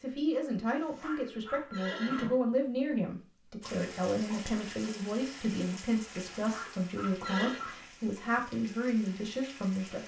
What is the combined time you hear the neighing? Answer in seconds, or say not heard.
3 s.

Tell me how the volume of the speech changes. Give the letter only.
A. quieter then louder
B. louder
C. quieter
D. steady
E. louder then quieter
D.